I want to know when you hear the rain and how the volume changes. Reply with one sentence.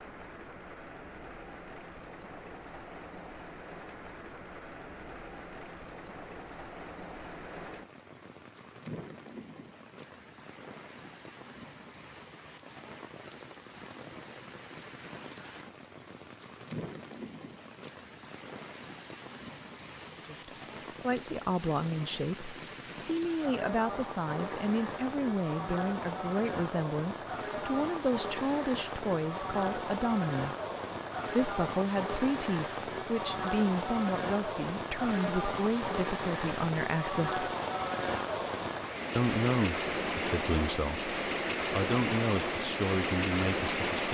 You can hear the rain from 0.0 to 44.0 s, getting louder.